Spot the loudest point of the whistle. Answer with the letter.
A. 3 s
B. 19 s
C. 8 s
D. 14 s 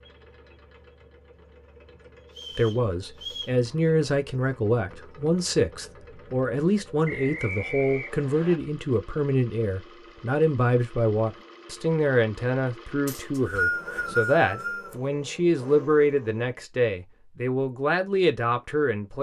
D.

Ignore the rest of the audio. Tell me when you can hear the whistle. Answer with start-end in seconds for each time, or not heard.
2.4-3.5, 7.0-8.6, 13.1-14.9.